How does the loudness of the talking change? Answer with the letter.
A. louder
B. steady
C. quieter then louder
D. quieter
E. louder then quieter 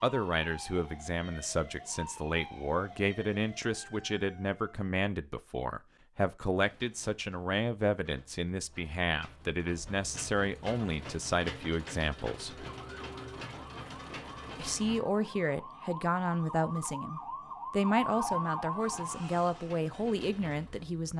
B.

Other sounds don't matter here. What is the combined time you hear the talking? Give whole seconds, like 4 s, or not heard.
19 s.